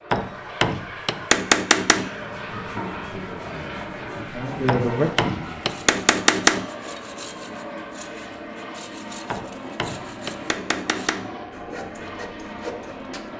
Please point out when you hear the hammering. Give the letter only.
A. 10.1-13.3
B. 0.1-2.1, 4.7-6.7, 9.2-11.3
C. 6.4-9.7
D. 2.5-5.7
B.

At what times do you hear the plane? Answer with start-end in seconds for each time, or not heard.
0.0-13.3.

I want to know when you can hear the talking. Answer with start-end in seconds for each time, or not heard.
2.5-5.7.